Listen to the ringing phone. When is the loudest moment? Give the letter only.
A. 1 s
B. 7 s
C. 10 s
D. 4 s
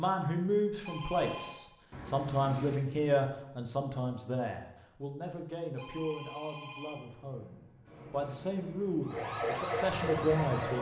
A.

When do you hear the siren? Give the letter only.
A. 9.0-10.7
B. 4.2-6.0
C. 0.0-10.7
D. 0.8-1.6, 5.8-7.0
A.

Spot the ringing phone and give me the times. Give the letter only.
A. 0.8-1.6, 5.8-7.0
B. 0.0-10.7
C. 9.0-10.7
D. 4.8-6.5
A.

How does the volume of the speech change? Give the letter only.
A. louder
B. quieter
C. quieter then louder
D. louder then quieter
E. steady
C.